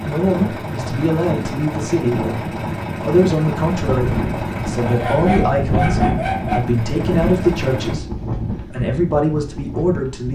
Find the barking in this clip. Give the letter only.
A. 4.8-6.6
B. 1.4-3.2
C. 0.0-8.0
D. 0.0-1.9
A.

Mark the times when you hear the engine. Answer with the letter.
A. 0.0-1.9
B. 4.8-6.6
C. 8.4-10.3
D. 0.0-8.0
D.